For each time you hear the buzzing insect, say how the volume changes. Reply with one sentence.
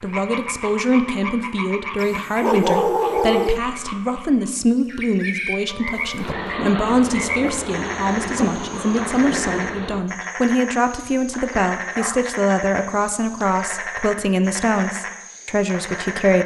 The buzzing insect can be heard from 5.9 to 10.1 s, at a steady volume.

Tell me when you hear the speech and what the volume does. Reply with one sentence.
You can hear the speech from 0.0 to 16.4 s, at a steady volume.